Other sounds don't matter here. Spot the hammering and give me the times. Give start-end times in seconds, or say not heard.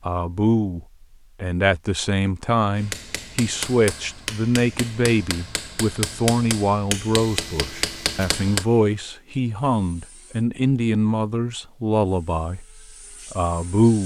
2.8-8.7.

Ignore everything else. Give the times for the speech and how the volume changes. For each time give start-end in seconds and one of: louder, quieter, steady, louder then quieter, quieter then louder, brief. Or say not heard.
0.0-14.0 steady.